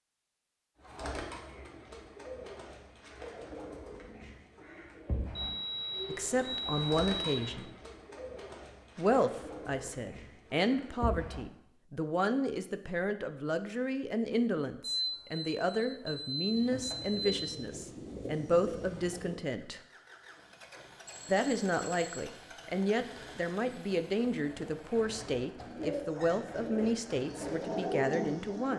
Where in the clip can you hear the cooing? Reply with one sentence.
You can hear the cooing from 0.8 to 11.4 s, from 16.4 to 19.4 s and from 25.6 to 28.7 s.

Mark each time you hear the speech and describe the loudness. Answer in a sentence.
You can hear the speech briefly from 6.0 to 7.7 s; from 8.9 to 19.8 s, at a steady volume; and from 21.2 to 28.7 s, at a steady volume.